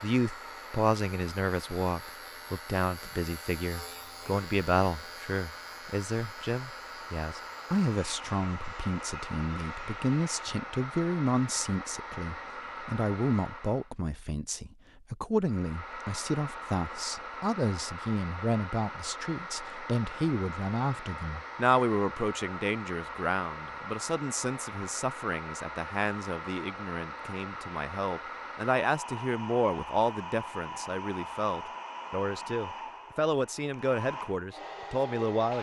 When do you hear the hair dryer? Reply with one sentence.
You can hear the hair dryer from 0.0 to 13.9 s and from 15.4 to 35.5 s.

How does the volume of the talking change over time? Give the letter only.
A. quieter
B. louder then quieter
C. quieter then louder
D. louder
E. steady
E.